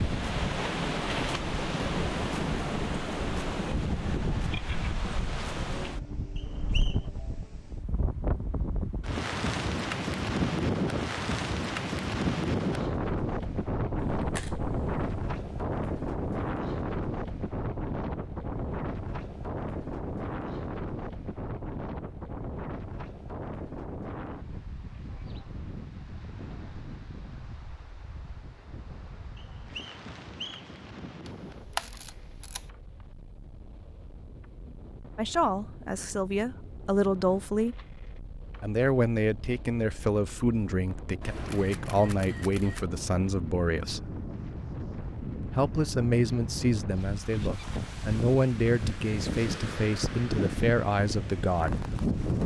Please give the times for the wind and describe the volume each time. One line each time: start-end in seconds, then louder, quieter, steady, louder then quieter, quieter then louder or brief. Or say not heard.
0.0-52.4 quieter then louder.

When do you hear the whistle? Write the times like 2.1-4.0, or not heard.
6.3-7.0, 29.4-30.8.